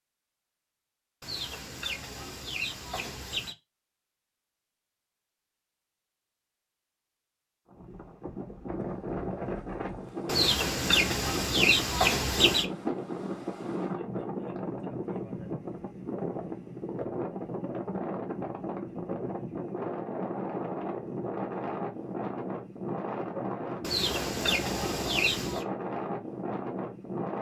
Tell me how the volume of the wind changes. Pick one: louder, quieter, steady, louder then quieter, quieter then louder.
steady.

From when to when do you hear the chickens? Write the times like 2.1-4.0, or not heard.
1.2-3.5, 10.2-12.7, 23.8-25.6.